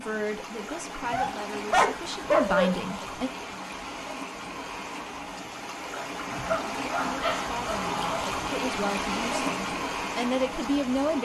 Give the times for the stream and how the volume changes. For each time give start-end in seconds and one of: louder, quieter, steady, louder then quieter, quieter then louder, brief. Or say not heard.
0.0-11.2 louder.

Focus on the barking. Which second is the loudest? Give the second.
2 s.